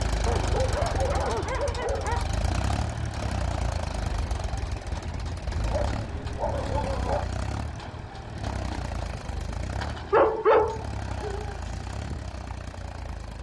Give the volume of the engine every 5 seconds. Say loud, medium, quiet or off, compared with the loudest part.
loud, loud, medium.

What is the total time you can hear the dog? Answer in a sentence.
The dog can be heard for 5 seconds in total.